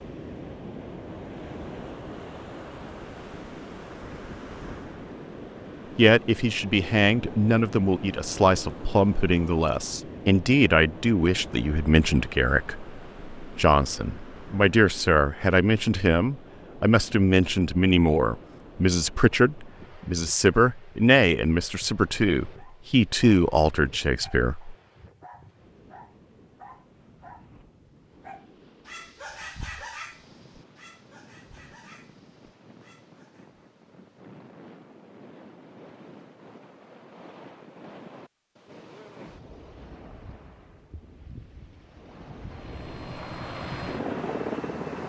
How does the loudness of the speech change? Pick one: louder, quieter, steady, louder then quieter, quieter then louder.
steady.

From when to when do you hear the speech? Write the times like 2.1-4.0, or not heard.
6.0-24.8.